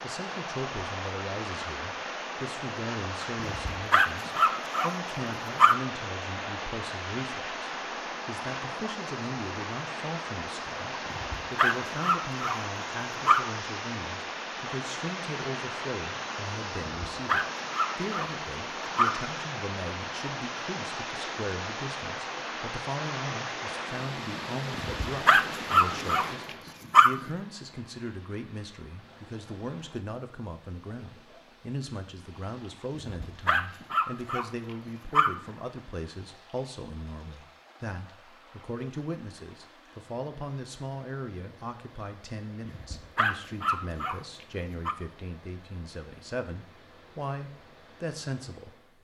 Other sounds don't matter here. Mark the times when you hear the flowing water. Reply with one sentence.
You can hear the flowing water from 0.0 to 49.0 s.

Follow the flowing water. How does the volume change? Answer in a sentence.
The volume of the flowing water goes down.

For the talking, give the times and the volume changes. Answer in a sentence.
You can hear the talking from 0.0 to 49.0 s, at a steady volume.